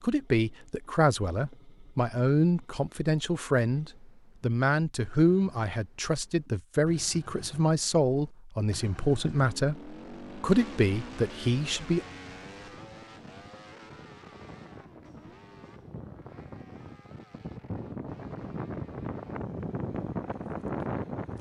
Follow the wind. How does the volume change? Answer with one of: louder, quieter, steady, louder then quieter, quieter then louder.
louder.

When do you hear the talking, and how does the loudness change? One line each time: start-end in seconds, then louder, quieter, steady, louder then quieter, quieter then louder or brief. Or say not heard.
0.0-12.0 steady.